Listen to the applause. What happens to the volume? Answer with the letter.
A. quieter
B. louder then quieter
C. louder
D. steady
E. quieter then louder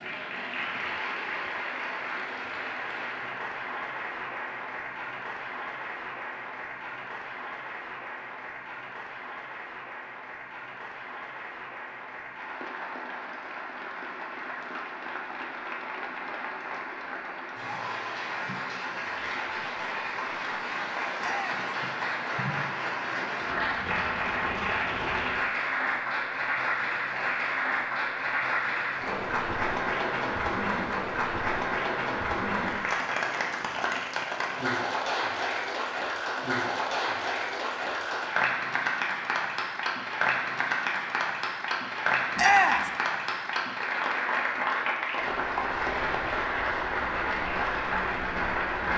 C.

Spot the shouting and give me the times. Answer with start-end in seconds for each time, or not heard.
21.2-21.6, 42.4-42.9.